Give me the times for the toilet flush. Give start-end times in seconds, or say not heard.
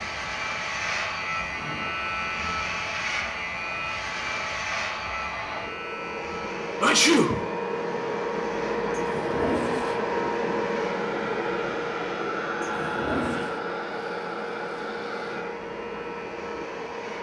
1.4-1.9, 8.9-10.0, 12.4-13.6.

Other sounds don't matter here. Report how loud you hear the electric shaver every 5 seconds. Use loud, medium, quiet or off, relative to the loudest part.
loud, medium, quiet, quiet.